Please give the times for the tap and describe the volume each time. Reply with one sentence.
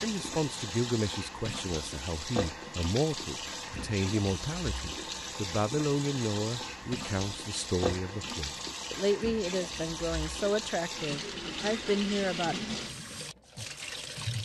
The tap can be heard from 0.0 to 14.4 s, at a steady volume.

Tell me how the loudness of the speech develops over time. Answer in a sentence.
The loudness of the speech stays about the same.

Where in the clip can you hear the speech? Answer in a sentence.
You can hear the speech from 0.0 to 12.7 s.